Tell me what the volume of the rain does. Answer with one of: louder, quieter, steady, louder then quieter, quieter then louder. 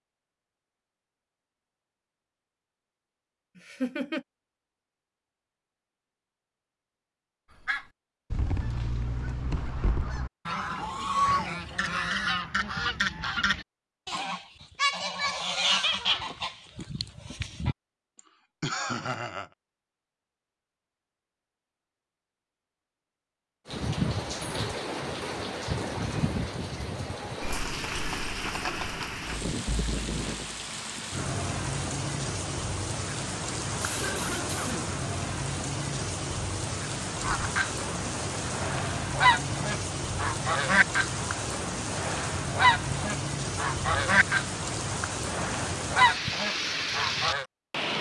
steady.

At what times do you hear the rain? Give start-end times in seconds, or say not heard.
23.6-47.9.